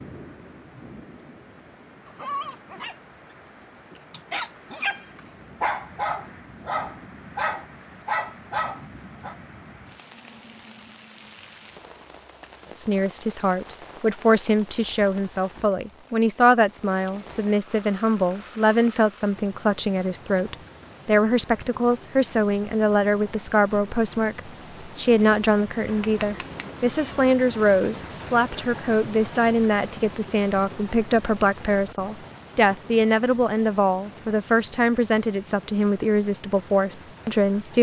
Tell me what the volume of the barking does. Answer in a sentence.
The loudness of the barking goes up.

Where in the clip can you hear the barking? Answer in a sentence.
You can hear the barking from 2.0 to 9.3 s.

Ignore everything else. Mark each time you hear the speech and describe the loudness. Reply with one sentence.
You can hear the speech from 12.8 to 37.7 s, at a steady volume.